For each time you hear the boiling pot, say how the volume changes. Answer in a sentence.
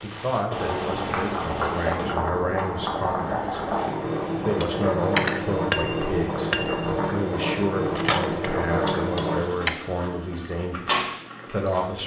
The boiling pot can be heard from 0.0 to 12.0 s, at a steady volume.